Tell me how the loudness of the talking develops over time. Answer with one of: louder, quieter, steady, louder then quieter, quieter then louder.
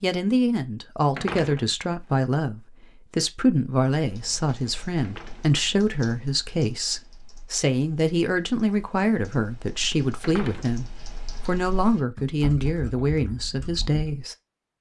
steady.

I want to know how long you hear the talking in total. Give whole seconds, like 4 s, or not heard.
14 s.